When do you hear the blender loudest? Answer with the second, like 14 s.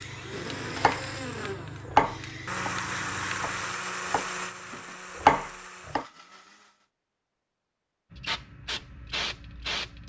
3 s.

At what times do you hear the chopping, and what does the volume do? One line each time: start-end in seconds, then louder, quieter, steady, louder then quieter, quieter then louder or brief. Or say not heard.
0.8-6.0 quieter then louder.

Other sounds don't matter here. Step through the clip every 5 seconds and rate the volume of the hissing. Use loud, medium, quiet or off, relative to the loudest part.
medium, loud.